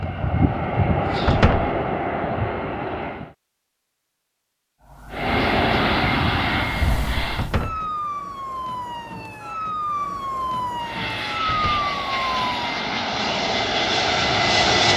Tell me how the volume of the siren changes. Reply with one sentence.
The loudness of the siren goes up.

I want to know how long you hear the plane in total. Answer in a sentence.
You can hear the plane for 10 seconds altogether.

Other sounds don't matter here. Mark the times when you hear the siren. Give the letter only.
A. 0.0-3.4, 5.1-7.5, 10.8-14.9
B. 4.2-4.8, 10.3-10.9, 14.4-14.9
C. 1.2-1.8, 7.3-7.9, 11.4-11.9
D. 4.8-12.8
D.